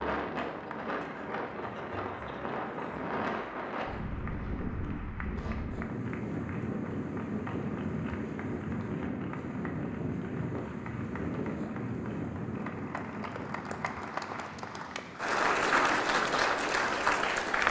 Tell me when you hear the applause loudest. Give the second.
16 s.